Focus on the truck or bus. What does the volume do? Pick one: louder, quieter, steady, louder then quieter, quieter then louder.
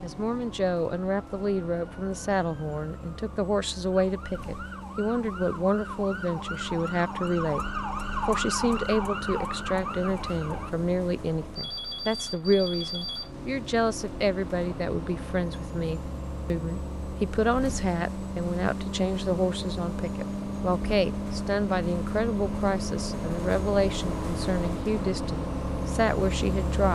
louder.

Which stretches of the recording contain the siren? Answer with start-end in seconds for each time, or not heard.
0.0-10.8.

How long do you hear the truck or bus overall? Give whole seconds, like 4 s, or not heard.
27 s.